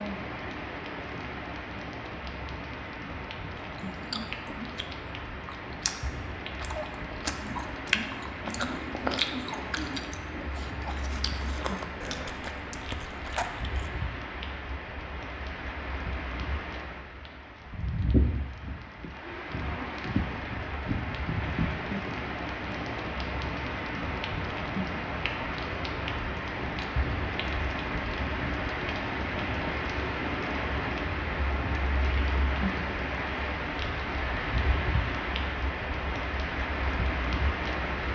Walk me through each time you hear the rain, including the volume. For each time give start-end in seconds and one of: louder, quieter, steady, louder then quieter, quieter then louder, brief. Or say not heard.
0.0-38.1 louder.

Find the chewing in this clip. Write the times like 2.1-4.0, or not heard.
3.8-13.9.